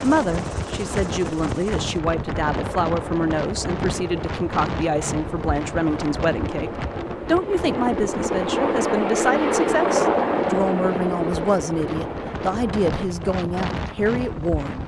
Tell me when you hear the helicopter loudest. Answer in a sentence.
The loudest moment of the helicopter is at 10 seconds.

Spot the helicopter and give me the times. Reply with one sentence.
You can hear the helicopter from 0.0 to 12.9 s.